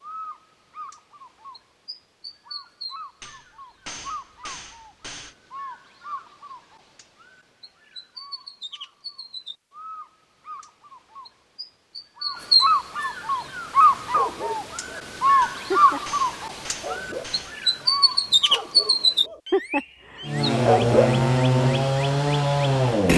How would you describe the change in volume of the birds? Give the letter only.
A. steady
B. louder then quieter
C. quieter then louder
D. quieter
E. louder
E.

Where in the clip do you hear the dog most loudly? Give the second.
21 s.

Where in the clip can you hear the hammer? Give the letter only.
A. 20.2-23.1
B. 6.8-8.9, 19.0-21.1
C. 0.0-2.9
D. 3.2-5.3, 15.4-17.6
D.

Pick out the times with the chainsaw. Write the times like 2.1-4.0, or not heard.
20.2-23.1.